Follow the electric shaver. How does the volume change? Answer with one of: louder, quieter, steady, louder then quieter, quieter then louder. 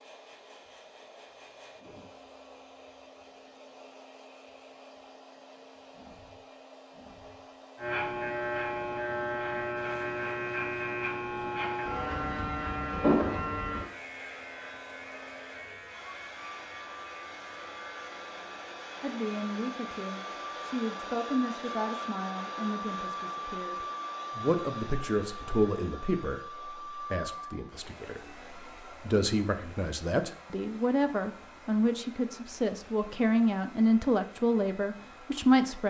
quieter.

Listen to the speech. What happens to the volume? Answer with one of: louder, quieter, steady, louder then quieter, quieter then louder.
louder.